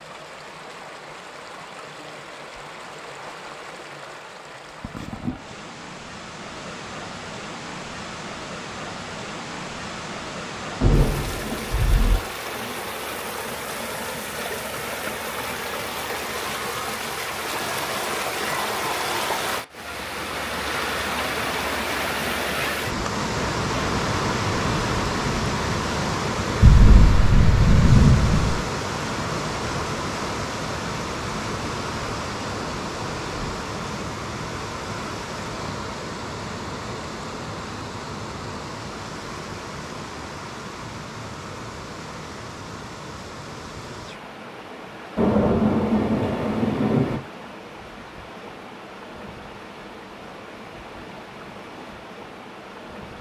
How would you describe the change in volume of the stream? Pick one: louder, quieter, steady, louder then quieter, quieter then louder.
louder then quieter.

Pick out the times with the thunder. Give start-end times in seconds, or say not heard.
10.8-12.2, 26.6-28.6, 45.1-47.2.